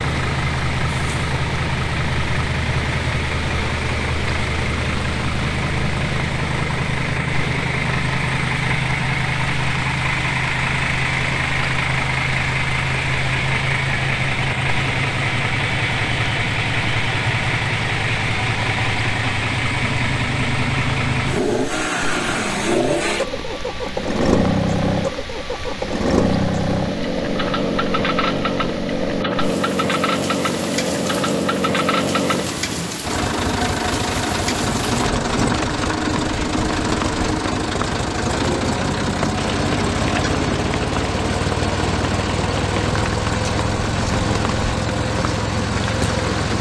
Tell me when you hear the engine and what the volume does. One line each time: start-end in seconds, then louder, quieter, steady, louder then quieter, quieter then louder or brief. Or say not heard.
0.0-46.5 steady.